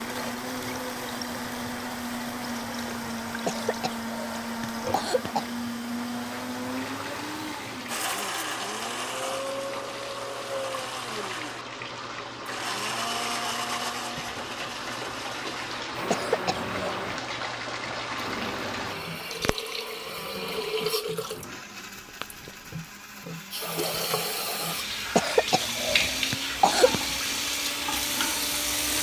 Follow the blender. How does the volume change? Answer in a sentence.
The volume of the blender goes down.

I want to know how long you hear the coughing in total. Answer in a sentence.
The coughing can be heard for 5 seconds in total.